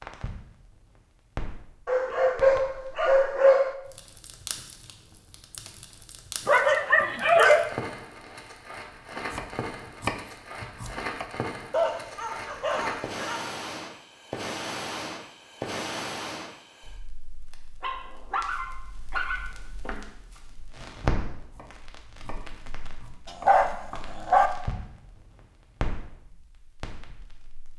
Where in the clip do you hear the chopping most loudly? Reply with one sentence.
The loudest moment of the chopping is at 10 seconds.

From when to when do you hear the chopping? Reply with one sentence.
You can hear the chopping from 9.3 to 11.3 s and from 21.5 to 24.1 s.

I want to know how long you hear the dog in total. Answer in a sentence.
The dog can be heard for 8 seconds in total.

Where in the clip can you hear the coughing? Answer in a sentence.
You can't hear the coughing here.